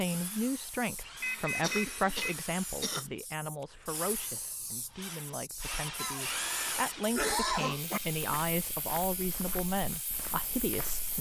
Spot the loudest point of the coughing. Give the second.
7 s.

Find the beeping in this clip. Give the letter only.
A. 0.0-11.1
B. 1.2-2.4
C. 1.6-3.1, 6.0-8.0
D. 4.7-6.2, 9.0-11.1
B.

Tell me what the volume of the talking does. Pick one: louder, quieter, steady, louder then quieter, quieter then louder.
quieter then louder.